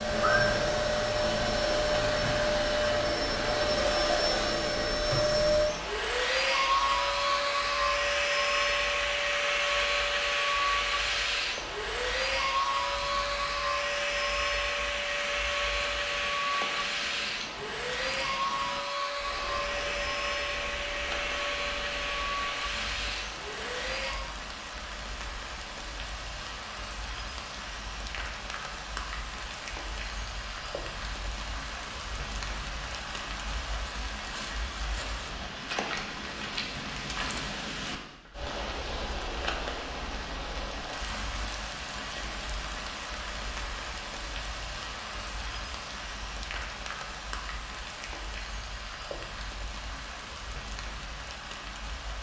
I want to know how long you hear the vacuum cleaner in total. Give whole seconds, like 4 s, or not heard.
24 s.